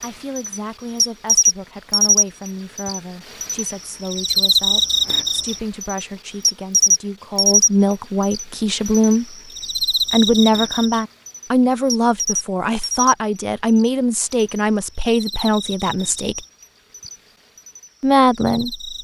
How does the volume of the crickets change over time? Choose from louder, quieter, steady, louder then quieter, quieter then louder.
quieter.